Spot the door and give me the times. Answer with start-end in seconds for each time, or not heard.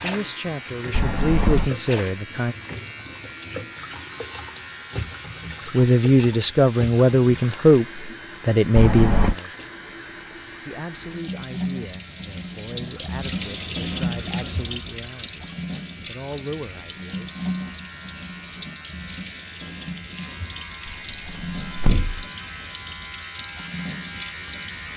0.9-1.7, 8.8-9.3, 20.9-22.2.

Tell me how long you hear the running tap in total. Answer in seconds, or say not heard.
25 s.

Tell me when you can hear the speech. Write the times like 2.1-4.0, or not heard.
0.0-2.5, 5.7-9.6, 10.6-17.4.